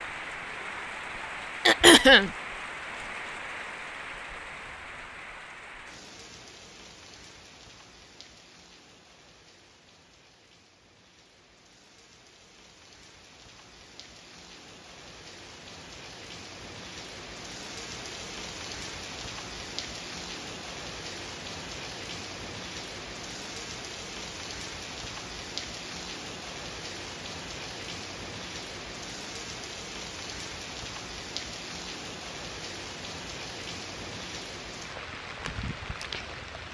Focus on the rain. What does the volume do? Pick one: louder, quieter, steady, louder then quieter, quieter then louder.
quieter then louder.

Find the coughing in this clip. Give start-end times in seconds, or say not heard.
1.6-2.3.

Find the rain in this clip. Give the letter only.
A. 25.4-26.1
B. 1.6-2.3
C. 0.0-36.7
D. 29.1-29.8
C.